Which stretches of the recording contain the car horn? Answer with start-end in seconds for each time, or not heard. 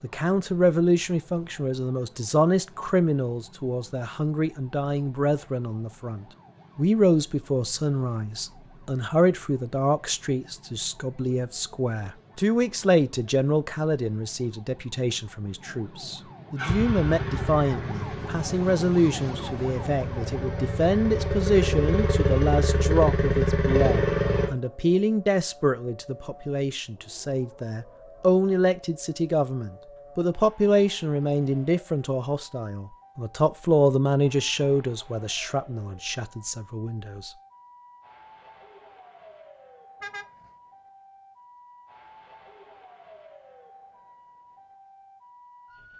40.0-40.5.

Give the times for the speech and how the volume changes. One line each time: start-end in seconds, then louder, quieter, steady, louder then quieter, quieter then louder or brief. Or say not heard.
0.0-37.3 steady.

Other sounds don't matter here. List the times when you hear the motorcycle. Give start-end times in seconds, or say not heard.
16.6-24.5.